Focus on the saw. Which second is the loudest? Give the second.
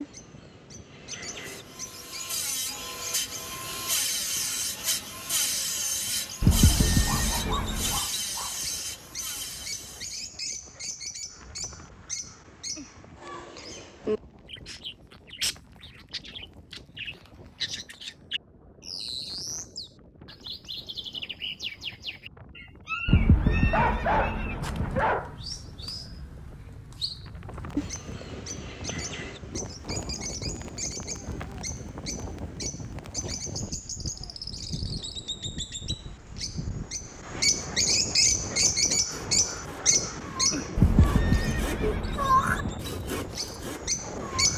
42 s.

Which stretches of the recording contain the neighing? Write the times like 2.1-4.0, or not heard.
6.4-8.0, 23.1-25.1, 40.8-42.8.